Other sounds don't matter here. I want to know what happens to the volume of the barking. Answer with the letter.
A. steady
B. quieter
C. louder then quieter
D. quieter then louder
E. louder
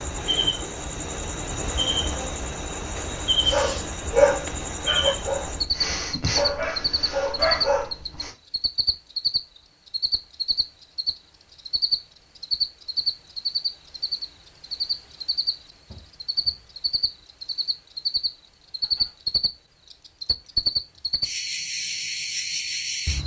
D.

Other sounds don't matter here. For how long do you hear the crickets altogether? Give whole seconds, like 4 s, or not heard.
23 s.